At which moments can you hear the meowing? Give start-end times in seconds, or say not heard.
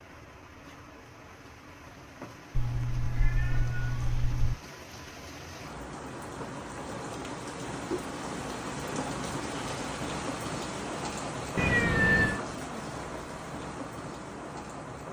2.5-4.5, 11.6-12.4.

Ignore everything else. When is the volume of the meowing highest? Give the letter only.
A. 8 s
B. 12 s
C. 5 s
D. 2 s
B.